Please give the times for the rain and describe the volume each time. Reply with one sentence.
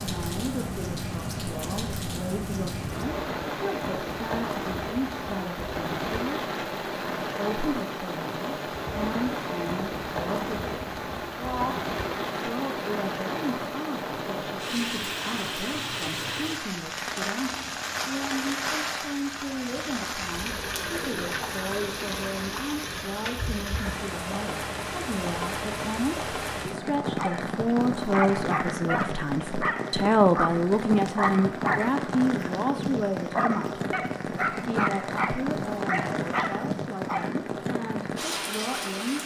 The rain can be heard from 0.0 to 39.2 s, at a steady volume.